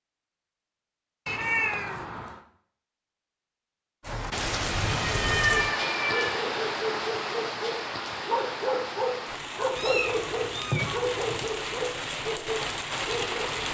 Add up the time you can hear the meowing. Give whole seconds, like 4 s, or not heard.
4 s.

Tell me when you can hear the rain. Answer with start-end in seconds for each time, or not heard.
4.0-13.6.